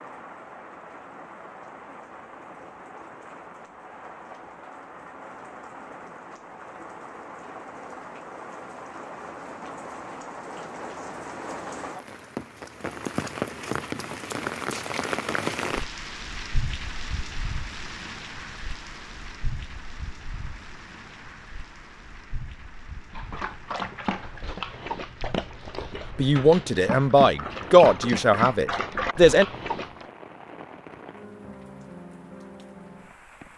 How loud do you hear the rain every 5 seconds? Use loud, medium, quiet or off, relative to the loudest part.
medium, medium, loud, loud, quiet, medium, medium.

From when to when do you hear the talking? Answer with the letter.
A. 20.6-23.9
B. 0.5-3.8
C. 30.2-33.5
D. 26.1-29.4
D.